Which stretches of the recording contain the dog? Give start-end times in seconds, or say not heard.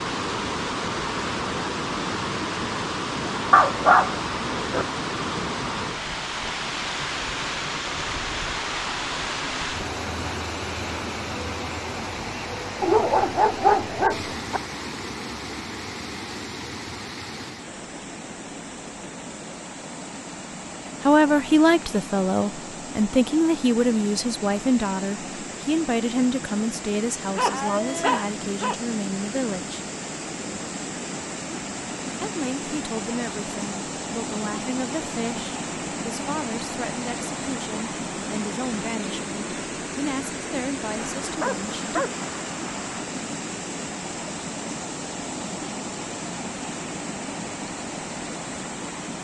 3.5-4.8, 12.8-14.6, 27.4-28.8, 41.0-43.0.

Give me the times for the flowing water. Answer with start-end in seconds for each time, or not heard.
0.0-49.1.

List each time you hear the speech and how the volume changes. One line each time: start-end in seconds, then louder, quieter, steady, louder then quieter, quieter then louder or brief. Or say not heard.
21.0-29.8 quieter
32.2-42.0 steady.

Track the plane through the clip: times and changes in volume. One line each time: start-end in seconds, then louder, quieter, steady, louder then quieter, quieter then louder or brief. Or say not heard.
not heard.